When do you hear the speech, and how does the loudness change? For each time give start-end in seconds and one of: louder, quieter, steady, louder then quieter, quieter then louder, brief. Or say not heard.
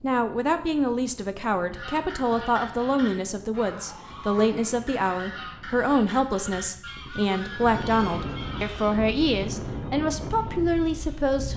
0.0-11.5 steady.